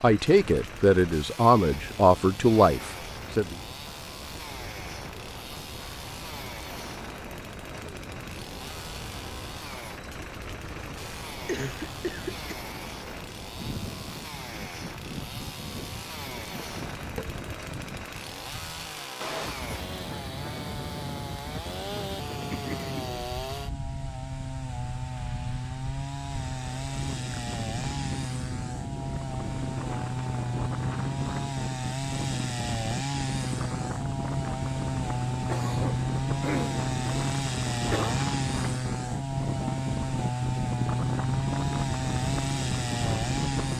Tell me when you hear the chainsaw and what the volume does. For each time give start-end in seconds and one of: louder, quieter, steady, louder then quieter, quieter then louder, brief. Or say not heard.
0.0-43.7 louder.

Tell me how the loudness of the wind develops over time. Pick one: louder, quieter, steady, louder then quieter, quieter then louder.
louder.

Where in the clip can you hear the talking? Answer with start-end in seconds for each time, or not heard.
0.0-3.5.